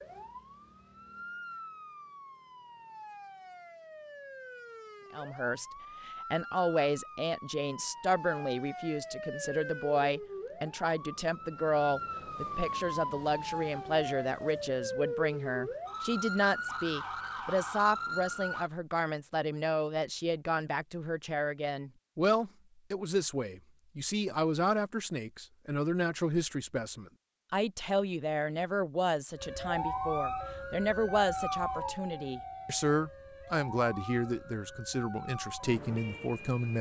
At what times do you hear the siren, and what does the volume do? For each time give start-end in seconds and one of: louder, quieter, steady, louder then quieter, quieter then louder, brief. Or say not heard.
0.0-18.7 louder
29.4-36.7 quieter.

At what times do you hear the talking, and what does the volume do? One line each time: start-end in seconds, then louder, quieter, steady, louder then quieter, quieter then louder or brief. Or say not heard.
5.1-36.7 steady.